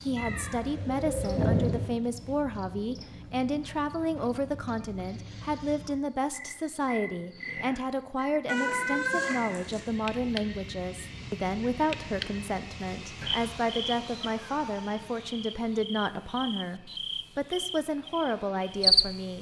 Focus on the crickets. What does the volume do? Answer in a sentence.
The volume of the crickets goes up.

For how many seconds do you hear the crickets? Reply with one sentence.
The crickets can be heard for 19 seconds in total.